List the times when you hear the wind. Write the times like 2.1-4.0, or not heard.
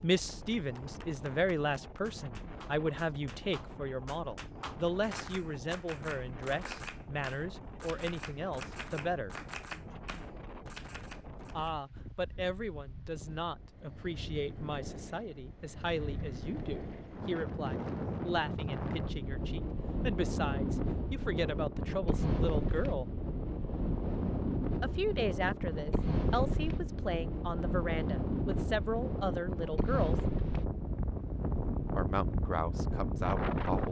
0.0-33.8.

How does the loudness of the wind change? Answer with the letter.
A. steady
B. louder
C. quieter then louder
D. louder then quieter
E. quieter
B.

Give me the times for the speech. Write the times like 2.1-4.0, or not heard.
0.0-9.3, 11.6-23.1, 24.8-30.1, 31.9-33.8.